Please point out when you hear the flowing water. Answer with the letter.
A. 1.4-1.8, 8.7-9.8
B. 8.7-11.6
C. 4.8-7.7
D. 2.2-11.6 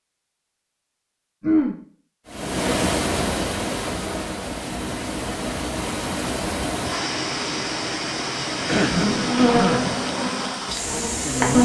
D.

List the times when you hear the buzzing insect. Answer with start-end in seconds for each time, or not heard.
8.7-11.6.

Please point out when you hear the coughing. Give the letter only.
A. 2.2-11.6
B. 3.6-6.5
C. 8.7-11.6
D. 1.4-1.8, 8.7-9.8
D.